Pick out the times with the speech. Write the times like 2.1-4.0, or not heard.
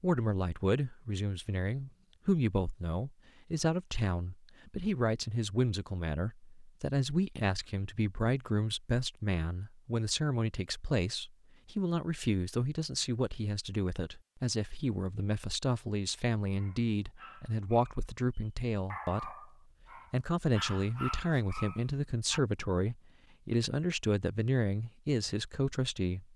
0.0-19.5, 20.1-26.2.